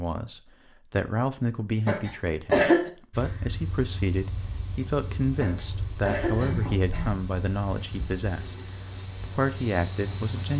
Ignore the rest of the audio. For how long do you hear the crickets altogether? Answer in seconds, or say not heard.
7 s.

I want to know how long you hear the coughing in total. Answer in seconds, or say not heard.
3 s.